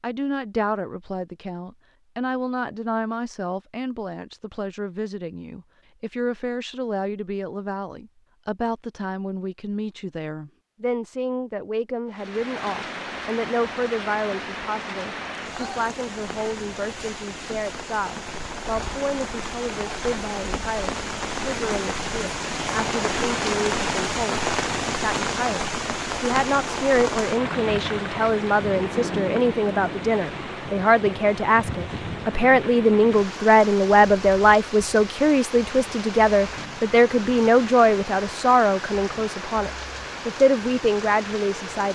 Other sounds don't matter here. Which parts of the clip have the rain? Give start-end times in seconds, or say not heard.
12.1-41.9.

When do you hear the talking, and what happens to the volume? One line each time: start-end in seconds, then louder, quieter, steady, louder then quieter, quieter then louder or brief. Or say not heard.
0.0-41.9 louder.